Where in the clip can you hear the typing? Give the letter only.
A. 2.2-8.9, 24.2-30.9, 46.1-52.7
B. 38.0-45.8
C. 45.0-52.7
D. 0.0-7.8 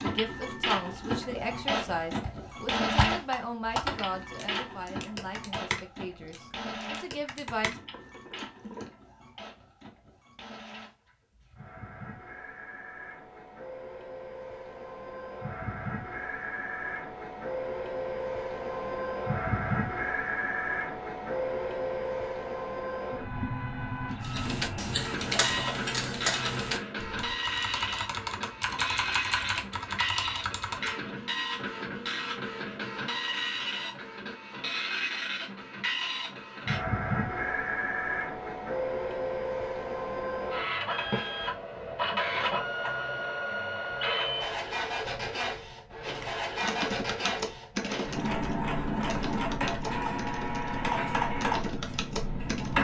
A.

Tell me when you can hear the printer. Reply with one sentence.
You can hear the printer from 0.0 to 52.7 s.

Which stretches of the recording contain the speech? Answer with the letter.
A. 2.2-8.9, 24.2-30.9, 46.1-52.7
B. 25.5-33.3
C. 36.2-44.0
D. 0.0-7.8
D.